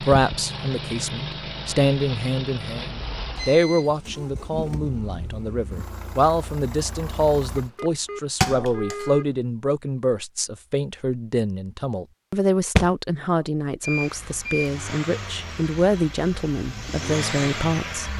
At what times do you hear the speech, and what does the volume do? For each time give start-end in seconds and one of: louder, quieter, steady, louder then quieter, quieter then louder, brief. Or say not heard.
0.0-18.1 steady.